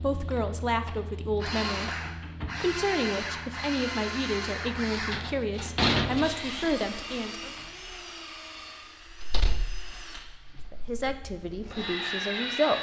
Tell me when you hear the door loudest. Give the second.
6 s.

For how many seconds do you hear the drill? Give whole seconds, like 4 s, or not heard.
13 s.